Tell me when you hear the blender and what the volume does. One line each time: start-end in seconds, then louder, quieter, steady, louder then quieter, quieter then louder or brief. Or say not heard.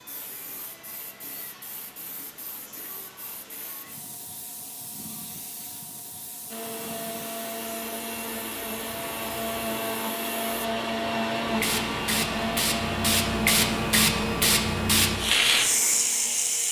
6.5-16.6 louder then quieter.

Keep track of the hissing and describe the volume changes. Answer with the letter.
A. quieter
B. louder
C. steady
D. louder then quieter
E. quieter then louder
B.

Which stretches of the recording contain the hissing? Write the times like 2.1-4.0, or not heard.
0.0-16.6.